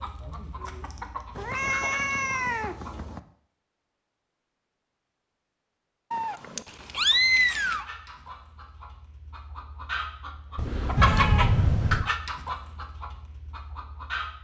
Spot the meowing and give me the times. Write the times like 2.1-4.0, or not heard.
1.4-3.2, 6.1-7.8, 10.6-12.1.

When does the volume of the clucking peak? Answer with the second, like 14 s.
11 s.